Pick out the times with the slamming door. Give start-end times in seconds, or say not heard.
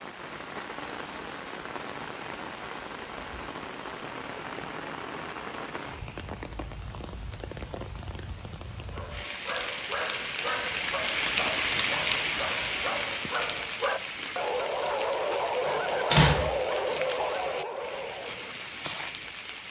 16.1-16.9.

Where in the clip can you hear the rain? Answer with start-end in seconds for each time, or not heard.
0.0-19.6.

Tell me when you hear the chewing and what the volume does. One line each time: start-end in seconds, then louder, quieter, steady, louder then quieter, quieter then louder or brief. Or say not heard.
not heard.